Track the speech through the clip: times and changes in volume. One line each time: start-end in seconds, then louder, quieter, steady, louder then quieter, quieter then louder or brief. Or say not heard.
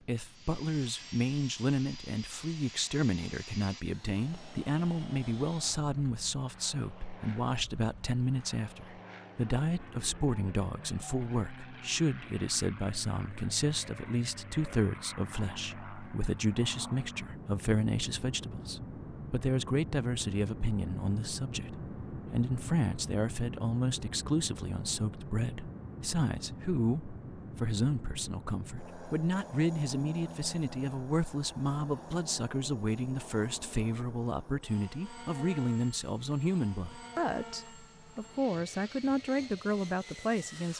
0.1-40.7 steady.